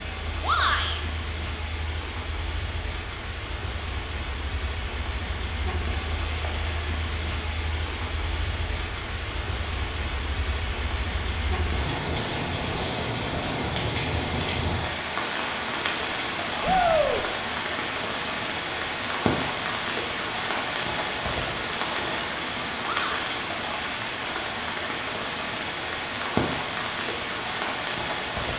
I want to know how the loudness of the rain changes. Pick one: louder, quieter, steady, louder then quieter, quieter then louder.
louder.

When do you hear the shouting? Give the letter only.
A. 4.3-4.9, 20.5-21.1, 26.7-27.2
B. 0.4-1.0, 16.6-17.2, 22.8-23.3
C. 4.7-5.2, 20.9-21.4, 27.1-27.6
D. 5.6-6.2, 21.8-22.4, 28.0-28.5
B.